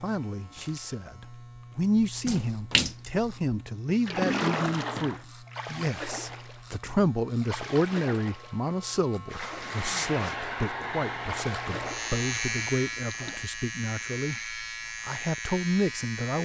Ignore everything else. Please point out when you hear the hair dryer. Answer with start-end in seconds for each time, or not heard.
9.5-13.4.